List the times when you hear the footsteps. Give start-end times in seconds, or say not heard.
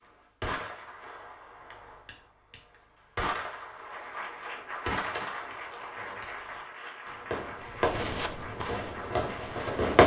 7.5-9.9.